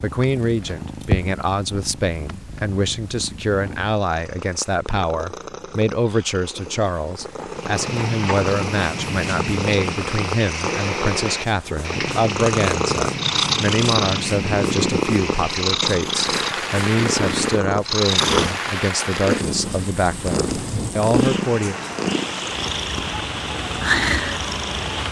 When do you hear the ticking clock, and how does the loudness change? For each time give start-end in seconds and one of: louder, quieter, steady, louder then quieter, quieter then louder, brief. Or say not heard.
not heard.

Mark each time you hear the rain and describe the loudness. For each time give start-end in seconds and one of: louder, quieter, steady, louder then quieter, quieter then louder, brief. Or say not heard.
7.5-25.0 steady.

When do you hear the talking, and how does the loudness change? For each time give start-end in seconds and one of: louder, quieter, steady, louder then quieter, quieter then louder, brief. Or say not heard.
0.0-21.8 steady.